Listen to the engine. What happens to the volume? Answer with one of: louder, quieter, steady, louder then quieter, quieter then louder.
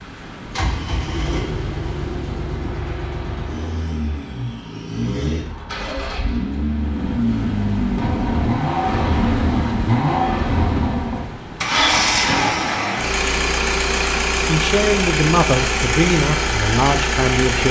louder.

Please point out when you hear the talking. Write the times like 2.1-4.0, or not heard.
14.4-17.6.